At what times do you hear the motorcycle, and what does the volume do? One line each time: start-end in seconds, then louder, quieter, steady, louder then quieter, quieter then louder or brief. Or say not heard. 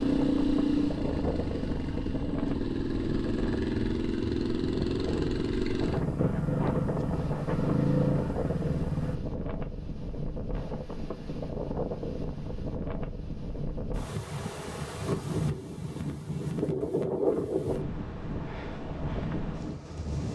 0.0-9.2 steady.